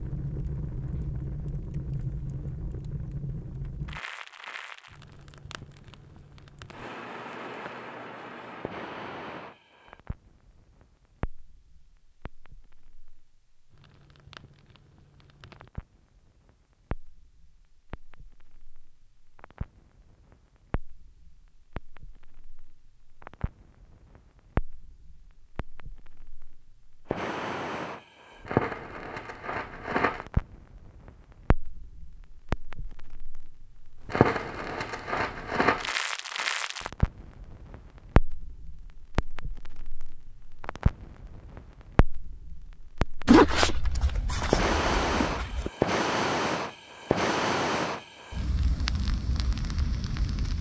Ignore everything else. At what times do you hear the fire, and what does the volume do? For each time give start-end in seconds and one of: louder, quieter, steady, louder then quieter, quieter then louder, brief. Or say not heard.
0.0-50.5 quieter then louder.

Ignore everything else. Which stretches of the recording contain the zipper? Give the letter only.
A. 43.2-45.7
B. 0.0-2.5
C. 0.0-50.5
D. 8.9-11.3
A.